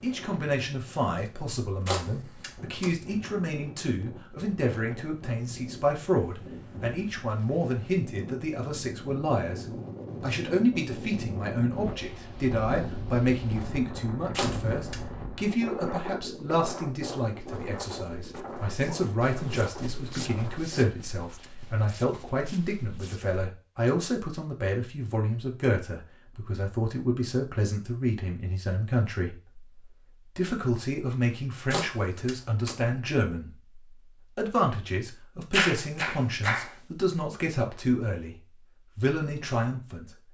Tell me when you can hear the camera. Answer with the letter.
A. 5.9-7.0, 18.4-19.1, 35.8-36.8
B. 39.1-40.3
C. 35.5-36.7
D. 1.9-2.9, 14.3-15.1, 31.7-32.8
D.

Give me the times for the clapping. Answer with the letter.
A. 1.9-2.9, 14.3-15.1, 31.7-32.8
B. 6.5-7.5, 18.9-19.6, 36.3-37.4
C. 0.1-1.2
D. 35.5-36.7
D.